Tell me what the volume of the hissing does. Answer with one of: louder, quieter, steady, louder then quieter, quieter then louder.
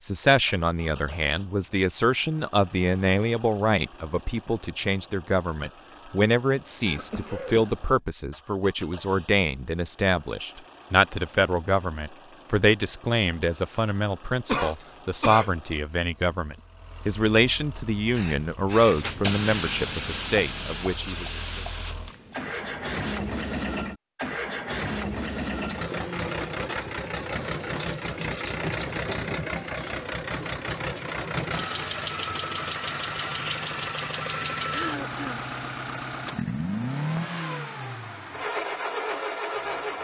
quieter.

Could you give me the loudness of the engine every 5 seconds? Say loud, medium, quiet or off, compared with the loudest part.
quiet, quiet, quiet, quiet, loud, loud, loud, loud.